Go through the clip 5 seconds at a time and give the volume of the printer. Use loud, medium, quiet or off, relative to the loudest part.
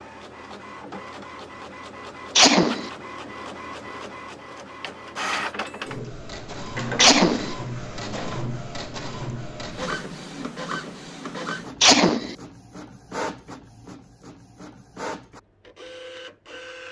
medium, loud, medium, medium.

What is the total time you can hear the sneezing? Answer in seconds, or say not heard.
2 s.